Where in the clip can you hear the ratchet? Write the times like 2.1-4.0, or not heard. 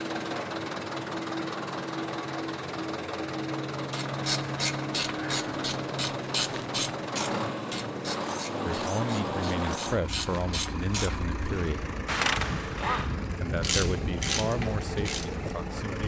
3.9-15.3.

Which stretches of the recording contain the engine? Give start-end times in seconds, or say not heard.
0.0-16.0.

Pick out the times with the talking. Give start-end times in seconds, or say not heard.
8.7-11.9, 13.4-16.0.